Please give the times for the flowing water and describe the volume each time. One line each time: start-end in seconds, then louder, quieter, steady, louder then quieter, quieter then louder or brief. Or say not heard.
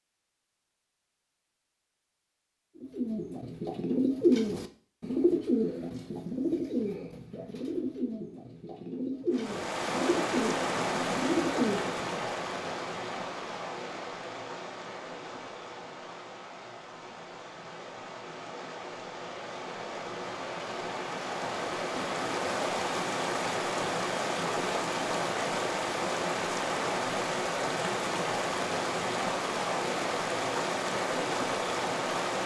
9.3-32.4 quieter then louder.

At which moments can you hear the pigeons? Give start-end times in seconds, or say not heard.
2.8-12.2.